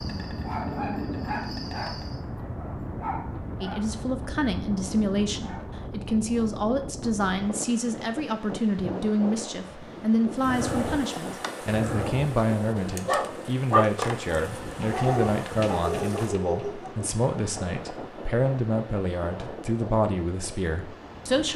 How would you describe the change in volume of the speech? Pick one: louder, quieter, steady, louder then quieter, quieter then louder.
steady.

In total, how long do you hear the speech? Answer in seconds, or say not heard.
18 s.